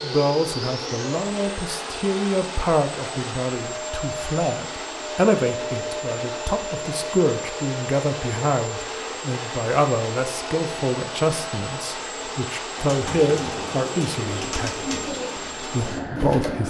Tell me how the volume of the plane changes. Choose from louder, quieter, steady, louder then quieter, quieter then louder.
steady.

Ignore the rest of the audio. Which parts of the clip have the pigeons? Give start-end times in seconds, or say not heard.
12.8-16.6.